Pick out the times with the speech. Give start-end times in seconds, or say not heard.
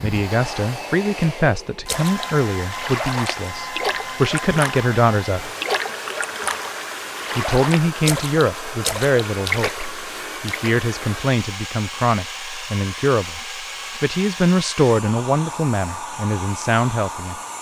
0.0-5.5, 7.3-17.4.